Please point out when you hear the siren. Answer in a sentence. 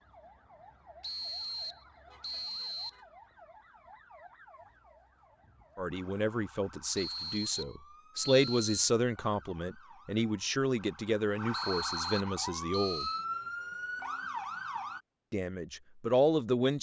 You can hear the siren from 0.0 to 15.0 s.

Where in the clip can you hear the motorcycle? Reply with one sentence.
The motorcycle can't be heard in this clip.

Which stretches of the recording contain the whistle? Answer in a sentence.
You can hear the whistle from 1.0 to 3.0 s, from 7.0 to 8.8 s and from 11.5 to 13.2 s.